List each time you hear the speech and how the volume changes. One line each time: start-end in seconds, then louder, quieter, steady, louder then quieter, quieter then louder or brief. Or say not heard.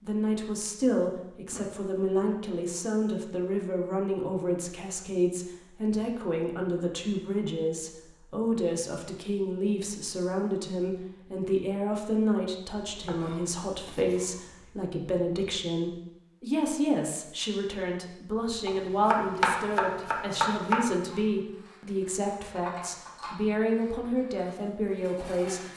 0.0-25.7 steady.